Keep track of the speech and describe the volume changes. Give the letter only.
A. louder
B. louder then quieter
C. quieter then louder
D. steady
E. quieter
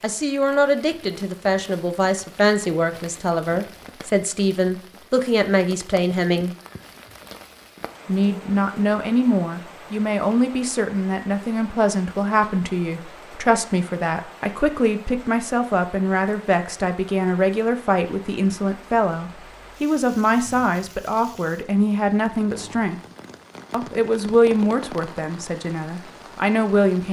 D.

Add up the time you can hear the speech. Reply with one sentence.
You can hear the speech for 25 seconds altogether.